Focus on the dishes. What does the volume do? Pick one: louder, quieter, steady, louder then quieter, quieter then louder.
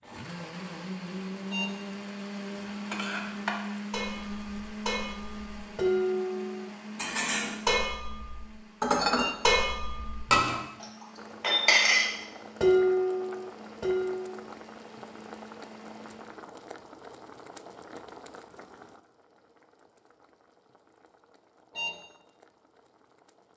louder.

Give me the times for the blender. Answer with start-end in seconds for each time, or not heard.
0.0-16.4.